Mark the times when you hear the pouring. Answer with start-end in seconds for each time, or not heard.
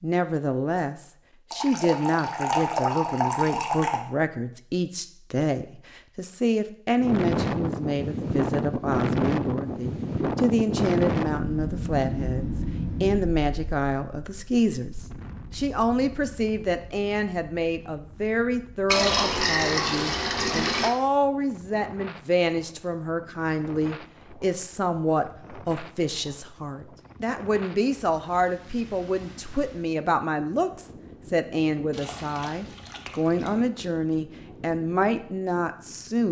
1.5-4.0, 18.9-20.9, 31.9-33.6.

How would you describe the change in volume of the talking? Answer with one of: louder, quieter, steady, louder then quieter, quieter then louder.
steady.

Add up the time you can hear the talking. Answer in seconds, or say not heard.
36 s.